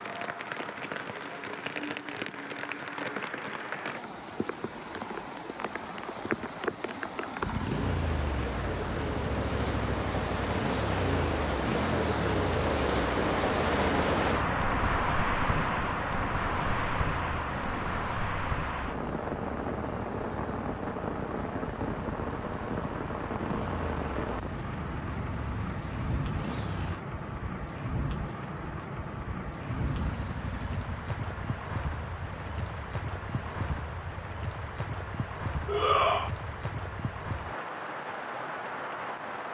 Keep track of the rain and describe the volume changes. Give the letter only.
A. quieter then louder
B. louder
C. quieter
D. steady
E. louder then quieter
E.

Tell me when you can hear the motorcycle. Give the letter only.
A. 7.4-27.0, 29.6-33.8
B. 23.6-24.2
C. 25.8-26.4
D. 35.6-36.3
A.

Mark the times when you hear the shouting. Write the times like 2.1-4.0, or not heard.
35.6-36.3.